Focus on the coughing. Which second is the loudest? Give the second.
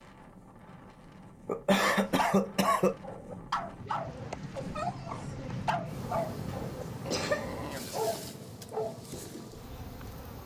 2 s.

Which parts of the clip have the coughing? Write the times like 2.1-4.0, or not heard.
1.4-3.0, 6.5-7.5.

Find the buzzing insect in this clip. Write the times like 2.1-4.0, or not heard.
3.8-10.4.